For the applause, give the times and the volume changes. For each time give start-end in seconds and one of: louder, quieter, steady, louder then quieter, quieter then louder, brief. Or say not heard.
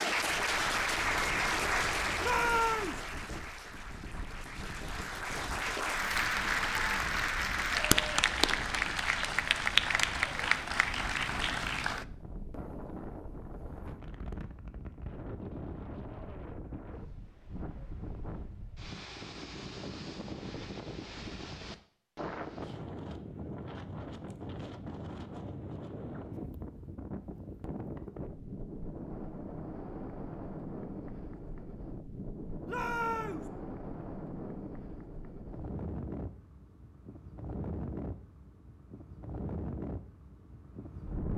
0.0-12.1 quieter then louder.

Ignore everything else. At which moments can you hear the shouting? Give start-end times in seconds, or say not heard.
2.2-3.0, 32.6-33.5.